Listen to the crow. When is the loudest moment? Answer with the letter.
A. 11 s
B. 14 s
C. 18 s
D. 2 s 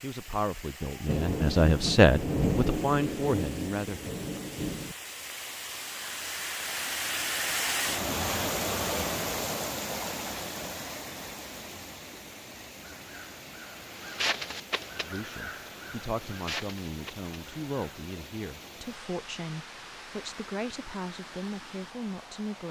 B.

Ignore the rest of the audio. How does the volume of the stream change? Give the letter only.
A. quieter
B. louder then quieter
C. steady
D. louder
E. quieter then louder
B.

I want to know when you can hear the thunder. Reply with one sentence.
You can hear the thunder from 1.1 to 5.0 s.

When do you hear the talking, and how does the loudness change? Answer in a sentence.
The talking can be heard from 0.0 to 4.0 s, getting louder then quieter; and from 15.0 to 22.6 s, at a steady volume.